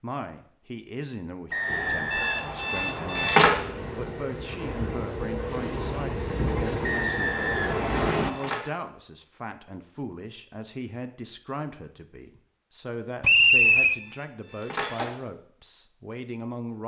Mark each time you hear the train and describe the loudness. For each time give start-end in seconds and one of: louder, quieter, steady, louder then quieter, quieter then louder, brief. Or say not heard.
1.6-8.3 louder.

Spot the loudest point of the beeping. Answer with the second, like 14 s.
3 s.